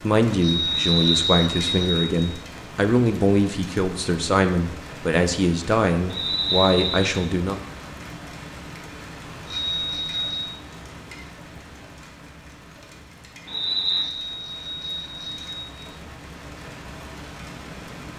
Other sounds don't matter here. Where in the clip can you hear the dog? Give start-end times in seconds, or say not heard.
not heard.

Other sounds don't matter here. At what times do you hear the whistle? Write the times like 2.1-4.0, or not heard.
0.7-1.3, 6.1-7.2, 13.4-14.1.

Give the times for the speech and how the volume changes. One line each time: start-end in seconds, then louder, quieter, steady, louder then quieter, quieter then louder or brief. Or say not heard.
0.0-7.6 steady.